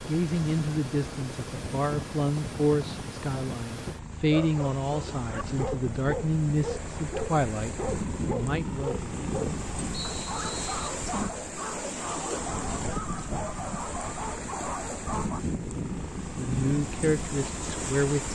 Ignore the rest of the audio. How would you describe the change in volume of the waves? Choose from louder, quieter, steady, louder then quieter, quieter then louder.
louder.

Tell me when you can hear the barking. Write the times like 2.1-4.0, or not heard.
4.2-15.4.